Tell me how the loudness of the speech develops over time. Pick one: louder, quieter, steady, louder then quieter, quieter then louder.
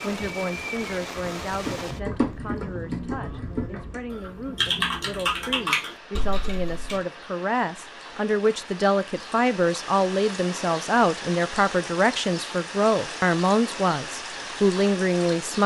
louder.